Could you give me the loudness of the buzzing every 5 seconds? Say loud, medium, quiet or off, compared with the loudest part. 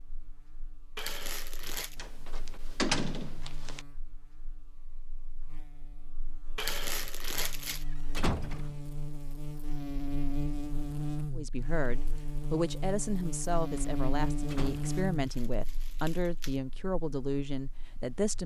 quiet, medium, loud, medium.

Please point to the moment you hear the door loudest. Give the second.
3 s.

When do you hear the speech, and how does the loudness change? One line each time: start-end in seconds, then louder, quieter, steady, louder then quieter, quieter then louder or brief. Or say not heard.
11.3-18.4 steady.